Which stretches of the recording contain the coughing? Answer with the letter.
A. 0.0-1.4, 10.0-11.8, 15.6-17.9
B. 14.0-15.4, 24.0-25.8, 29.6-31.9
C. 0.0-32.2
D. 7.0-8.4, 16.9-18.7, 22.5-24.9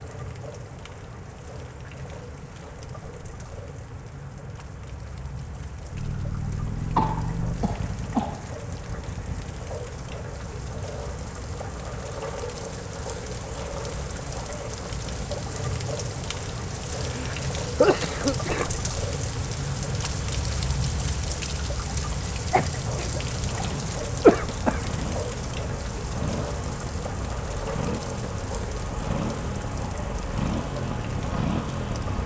D.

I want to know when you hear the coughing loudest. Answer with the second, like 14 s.
24 s.